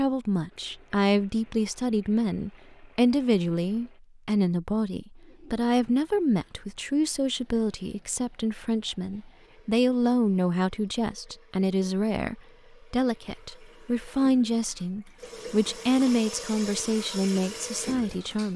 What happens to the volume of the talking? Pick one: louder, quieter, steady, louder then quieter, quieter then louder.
steady.